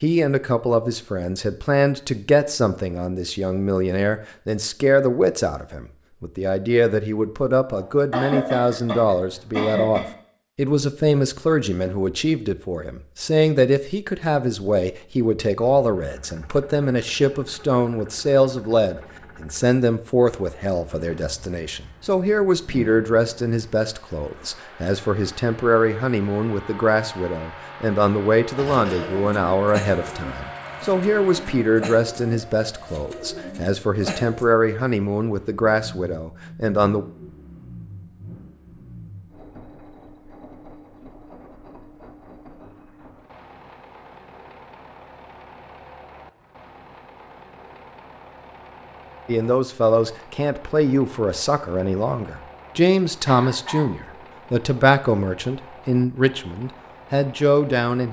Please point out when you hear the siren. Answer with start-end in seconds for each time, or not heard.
not heard.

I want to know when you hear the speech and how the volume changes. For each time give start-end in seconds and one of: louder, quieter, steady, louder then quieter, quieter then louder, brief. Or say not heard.
0.0-37.0 steady
49.2-58.0 steady.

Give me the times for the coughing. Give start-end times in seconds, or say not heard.
7.7-10.1, 28.6-29.2, 53.0-53.9.